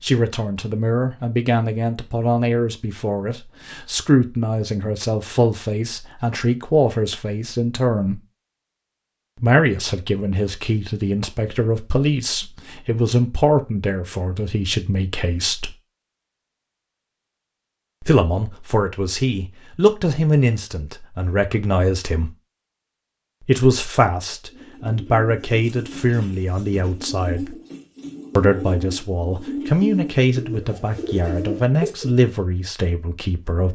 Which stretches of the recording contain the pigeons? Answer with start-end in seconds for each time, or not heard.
24.4-32.1.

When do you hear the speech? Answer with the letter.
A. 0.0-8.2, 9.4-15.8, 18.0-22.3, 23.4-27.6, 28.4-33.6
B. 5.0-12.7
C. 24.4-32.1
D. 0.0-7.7
A.